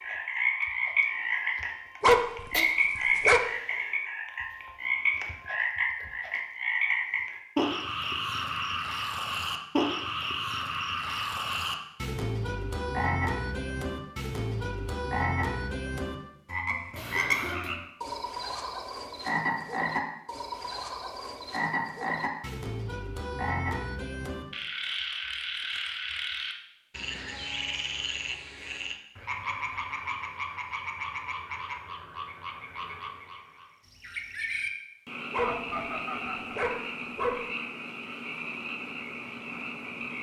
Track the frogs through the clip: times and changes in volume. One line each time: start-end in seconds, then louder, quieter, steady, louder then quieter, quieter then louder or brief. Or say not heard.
0.0-40.1 quieter.